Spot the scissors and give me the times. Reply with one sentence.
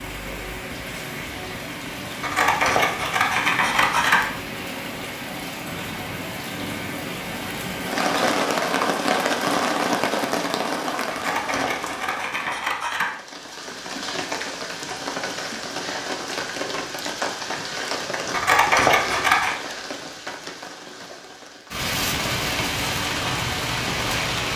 The scissors can be heard from 2.2 to 4.2 s, from 11.1 to 13.1 s and from 18.3 to 19.6 s.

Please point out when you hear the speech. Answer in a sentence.
The speech can't be heard in this clip.